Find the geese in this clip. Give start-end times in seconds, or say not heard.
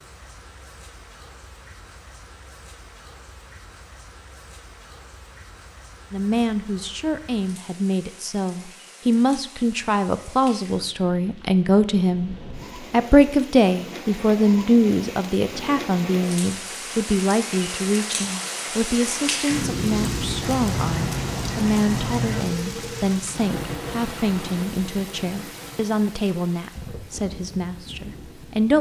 20.4-22.4.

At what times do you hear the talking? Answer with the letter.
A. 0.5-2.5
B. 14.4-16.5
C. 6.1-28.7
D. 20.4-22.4
C.